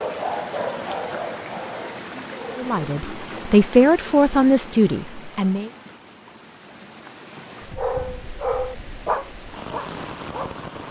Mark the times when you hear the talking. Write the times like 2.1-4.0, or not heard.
2.5-5.7.